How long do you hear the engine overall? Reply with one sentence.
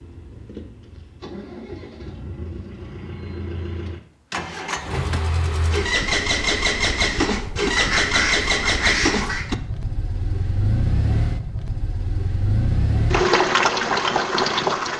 You can hear the engine for 15 seconds altogether.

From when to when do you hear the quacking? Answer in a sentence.
The quacking can be heard from 7.8 to 9.4 s.